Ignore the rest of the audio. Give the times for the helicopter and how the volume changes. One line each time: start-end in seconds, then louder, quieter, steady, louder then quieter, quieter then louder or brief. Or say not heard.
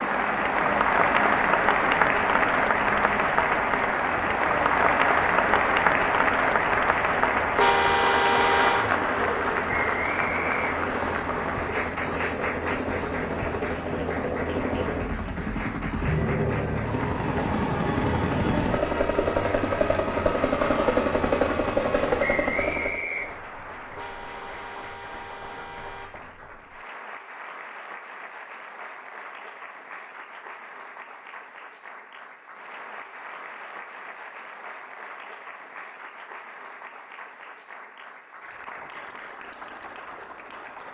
0.0-23.1 louder.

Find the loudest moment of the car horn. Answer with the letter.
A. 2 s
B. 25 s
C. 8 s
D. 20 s
C.